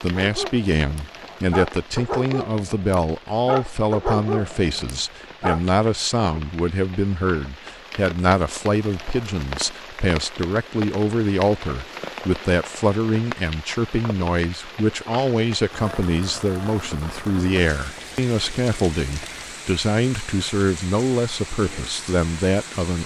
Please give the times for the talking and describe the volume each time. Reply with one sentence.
The talking can be heard from 0.0 to 23.0 s, at a steady volume.